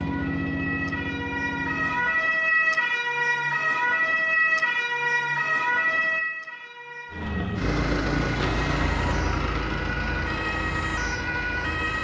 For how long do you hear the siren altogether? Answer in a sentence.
You can hear the siren for 12 seconds altogether.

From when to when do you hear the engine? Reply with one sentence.
You can hear the engine from 0.0 to 2.2 s and from 7.1 to 11.9 s.